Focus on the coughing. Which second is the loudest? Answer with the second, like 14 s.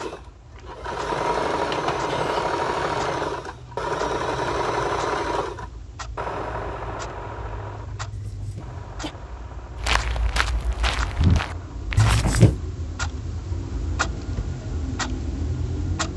12 s.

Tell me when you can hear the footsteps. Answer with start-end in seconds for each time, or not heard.
9.8-12.4.